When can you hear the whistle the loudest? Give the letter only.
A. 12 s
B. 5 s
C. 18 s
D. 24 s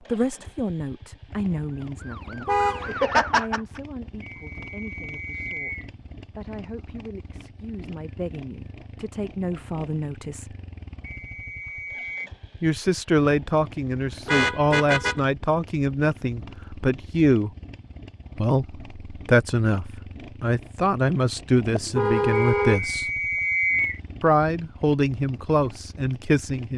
D.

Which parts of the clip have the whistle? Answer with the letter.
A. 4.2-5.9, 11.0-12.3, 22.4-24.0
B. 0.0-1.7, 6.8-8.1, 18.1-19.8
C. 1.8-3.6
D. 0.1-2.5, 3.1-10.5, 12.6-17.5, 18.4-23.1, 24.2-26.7
A.